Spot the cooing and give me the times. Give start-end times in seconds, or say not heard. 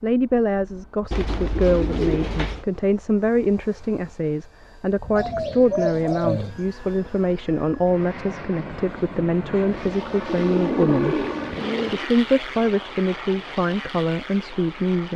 1.1-2.6, 5.2-6.6, 10.2-12.1.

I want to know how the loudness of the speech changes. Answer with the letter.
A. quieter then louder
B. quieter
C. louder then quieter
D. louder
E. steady
E.